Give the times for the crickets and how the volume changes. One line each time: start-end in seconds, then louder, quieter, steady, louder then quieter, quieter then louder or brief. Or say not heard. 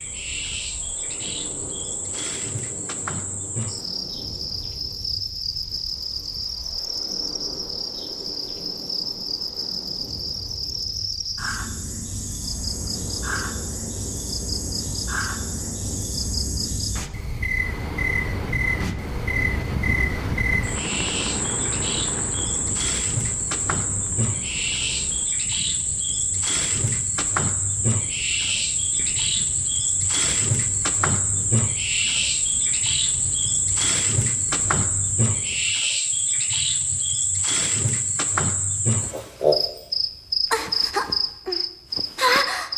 0.0-42.7 louder.